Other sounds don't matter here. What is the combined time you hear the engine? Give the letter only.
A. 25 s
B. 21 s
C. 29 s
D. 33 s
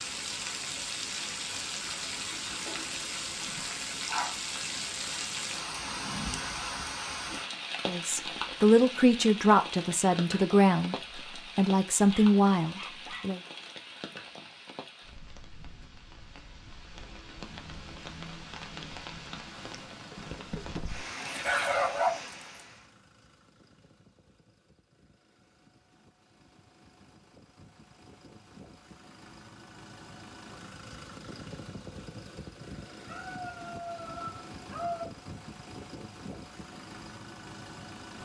B.